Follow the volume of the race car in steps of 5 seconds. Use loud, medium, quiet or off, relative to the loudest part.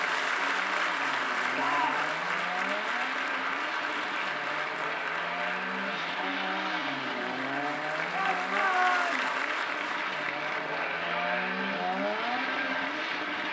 medium, loud, loud.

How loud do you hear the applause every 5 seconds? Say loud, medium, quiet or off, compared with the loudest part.
loud, loud, medium.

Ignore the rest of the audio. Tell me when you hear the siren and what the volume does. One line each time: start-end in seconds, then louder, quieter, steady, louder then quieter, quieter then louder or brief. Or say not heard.
not heard.